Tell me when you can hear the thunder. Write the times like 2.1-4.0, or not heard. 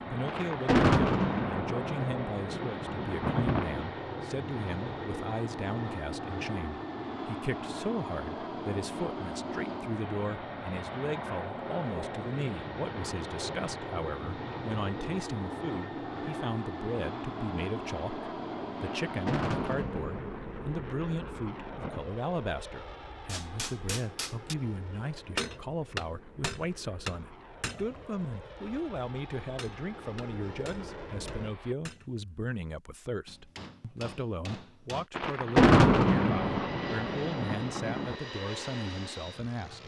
0.2-3.9, 19.1-22.1, 35.1-38.1.